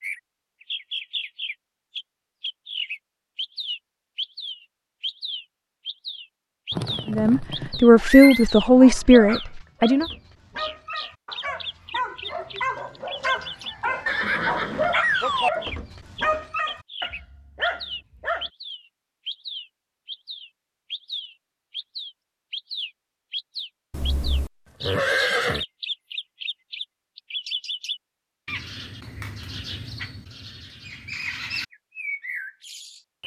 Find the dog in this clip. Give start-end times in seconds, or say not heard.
8.2-18.5.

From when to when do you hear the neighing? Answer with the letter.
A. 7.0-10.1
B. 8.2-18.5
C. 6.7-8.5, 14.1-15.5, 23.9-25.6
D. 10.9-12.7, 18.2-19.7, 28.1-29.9
C.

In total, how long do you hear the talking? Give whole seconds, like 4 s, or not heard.
3 s.